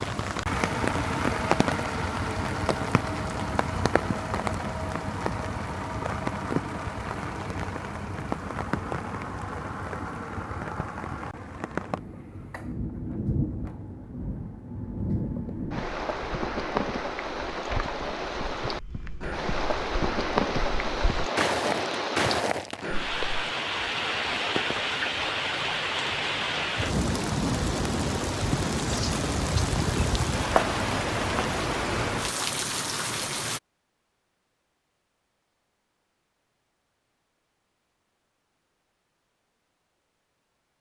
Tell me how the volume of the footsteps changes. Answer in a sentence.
The loudness of the footsteps goes up.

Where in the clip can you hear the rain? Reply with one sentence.
The rain can be heard from 0.0 to 33.6 s.